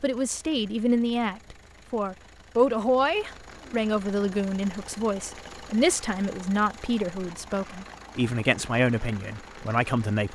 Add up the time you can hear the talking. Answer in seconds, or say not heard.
10 s.